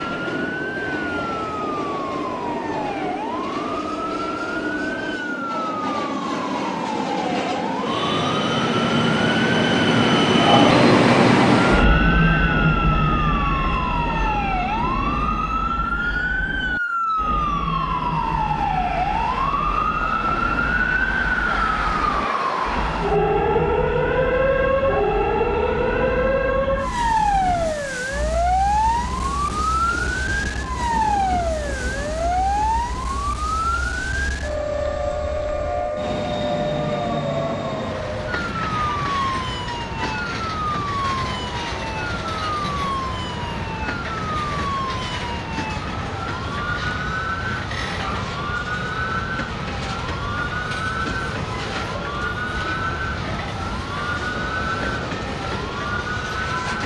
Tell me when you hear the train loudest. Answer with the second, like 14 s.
11 s.